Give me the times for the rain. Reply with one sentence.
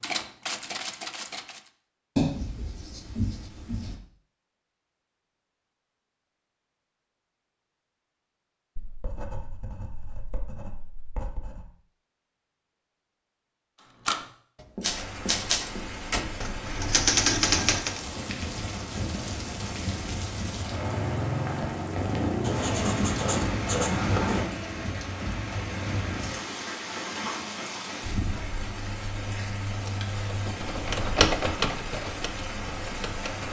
The rain can be heard from 14.8 to 33.4 s.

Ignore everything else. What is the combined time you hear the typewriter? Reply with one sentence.
You can hear the typewriter for 9 seconds altogether.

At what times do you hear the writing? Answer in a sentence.
You can hear the writing from 2.1 to 4.0 s, from 8.8 to 11.7 s, from 14.8 to 16.4 s, from 22.4 to 24.4 s and from 28.6 to 30.6 s.